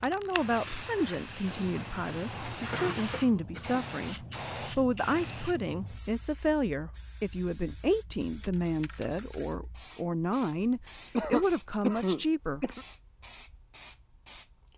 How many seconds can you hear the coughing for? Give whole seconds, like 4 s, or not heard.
3 s.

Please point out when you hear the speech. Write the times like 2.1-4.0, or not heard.
0.0-12.7.